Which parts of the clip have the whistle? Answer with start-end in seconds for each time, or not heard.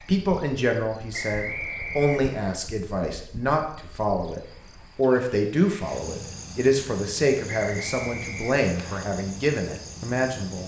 1.1-2.4, 7.5-9.0.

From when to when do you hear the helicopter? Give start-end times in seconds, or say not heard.
not heard.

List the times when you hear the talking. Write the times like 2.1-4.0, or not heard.
0.1-10.6.